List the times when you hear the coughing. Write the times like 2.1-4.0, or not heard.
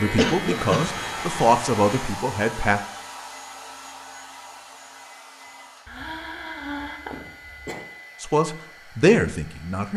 0.1-0.8, 5.8-7.8.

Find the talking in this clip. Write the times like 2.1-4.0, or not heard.
0.0-2.8, 8.2-9.9.